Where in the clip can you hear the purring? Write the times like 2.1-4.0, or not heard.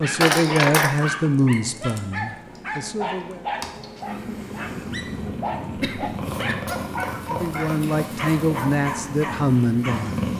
0.0-10.3.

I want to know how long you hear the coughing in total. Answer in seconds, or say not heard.
2 s.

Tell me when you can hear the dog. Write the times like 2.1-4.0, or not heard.
0.0-10.1.